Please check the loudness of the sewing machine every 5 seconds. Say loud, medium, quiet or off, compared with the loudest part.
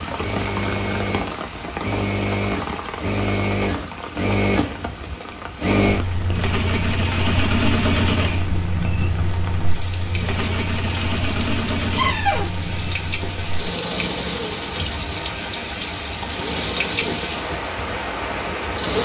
loud, loud, loud, medium.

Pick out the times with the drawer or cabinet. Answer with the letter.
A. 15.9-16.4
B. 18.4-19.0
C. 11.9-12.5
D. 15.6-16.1
C.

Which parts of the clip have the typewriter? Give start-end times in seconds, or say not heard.
not heard.